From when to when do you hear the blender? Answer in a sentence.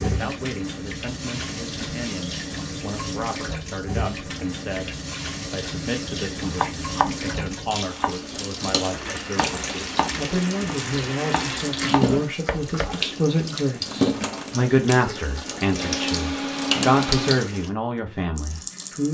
You can hear the blender from 8.9 to 12.1 s and from 15.7 to 17.4 s.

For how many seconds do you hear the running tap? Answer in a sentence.
You can hear the running tap for 19 seconds altogether.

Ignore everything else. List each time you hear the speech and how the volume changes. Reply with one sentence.
The speech can be heard from 0.0 to 19.0 s, getting louder.